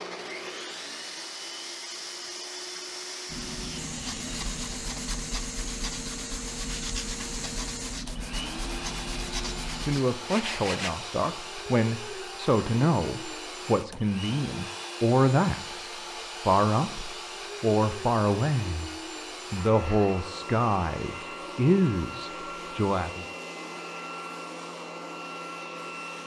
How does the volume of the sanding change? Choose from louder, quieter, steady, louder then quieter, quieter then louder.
steady.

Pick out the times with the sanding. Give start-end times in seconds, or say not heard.
3.3-10.9.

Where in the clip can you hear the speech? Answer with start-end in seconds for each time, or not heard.
9.8-18.9, 19.5-23.2.